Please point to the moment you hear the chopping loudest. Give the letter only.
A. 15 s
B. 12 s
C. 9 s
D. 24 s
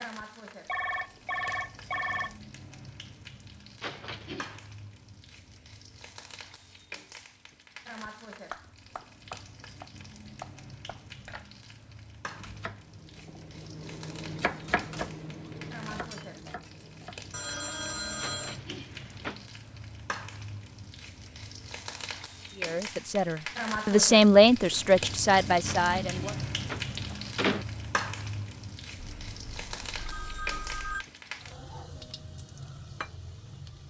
A.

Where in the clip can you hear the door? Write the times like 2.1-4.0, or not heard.
3.8-4.7, 18.2-19.4, 25.6-27.6.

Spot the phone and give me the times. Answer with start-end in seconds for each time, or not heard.
0.7-2.4, 17.3-18.6, 28.9-31.1.